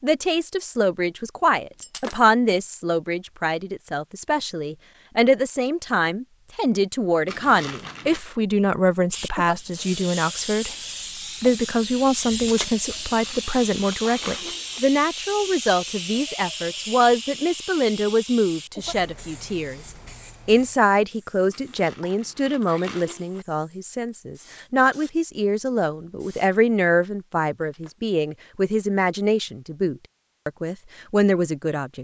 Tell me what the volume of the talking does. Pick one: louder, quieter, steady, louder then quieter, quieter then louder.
steady.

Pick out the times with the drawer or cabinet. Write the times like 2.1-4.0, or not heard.
not heard.